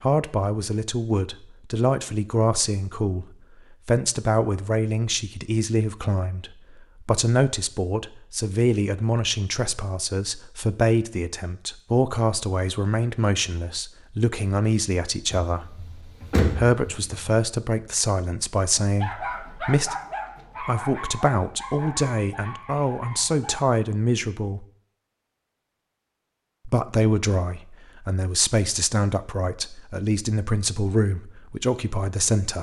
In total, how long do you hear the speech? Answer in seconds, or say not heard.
29 s.